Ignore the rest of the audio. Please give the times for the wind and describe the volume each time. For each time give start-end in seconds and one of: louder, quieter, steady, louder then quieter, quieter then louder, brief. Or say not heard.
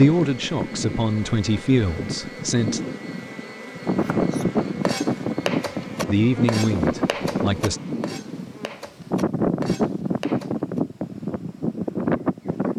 0.0-12.7 louder.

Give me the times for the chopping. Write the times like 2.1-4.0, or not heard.
4.0-10.8.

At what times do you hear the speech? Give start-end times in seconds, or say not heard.
0.0-2.8, 6.0-7.8.